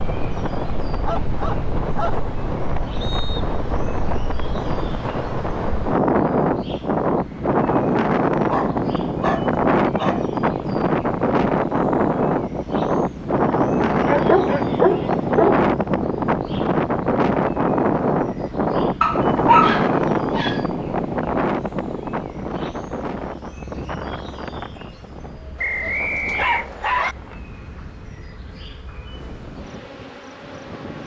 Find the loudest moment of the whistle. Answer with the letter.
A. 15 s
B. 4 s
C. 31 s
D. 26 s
D.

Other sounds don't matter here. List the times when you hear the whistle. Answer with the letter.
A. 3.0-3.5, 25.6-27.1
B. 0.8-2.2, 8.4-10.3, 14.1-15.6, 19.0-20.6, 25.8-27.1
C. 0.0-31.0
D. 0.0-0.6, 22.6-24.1
A.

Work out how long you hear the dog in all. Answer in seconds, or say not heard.
8 s.